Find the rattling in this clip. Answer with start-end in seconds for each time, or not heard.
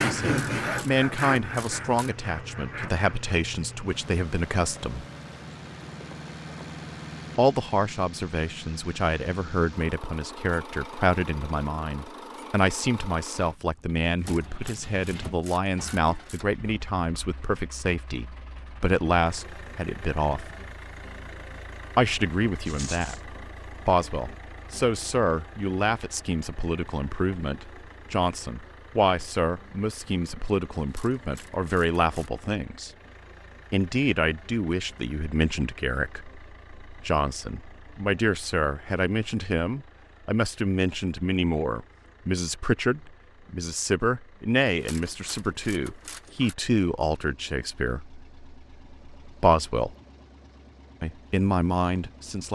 22.6-23.2.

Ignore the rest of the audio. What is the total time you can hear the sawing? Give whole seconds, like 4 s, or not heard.
3 s.